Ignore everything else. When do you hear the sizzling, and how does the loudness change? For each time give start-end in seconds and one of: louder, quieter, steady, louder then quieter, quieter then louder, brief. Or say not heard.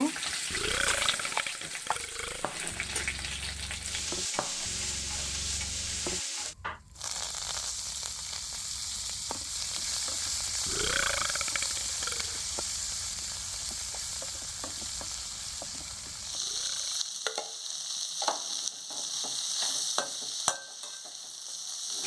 0.0-22.0 steady.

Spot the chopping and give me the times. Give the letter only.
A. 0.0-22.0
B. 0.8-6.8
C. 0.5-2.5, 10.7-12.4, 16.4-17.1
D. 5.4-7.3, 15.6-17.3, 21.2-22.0
B.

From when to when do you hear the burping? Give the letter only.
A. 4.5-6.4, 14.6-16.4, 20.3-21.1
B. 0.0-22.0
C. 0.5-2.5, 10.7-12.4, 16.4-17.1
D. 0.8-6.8
C.